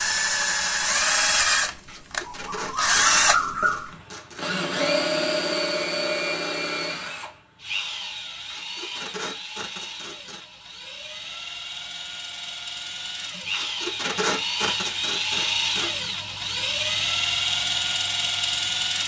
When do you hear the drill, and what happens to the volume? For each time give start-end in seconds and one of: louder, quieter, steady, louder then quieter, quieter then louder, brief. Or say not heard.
0.0-19.0 quieter then louder.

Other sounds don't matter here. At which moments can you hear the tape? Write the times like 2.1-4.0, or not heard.
1.9-4.5, 8.4-10.4, 13.5-16.0.